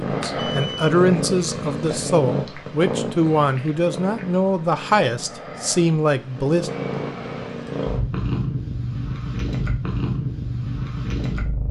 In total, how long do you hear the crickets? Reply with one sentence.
You can't hear the crickets here.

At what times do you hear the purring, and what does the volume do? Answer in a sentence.
You can hear the purring from 0.0 to 11.6 s, getting quieter then louder.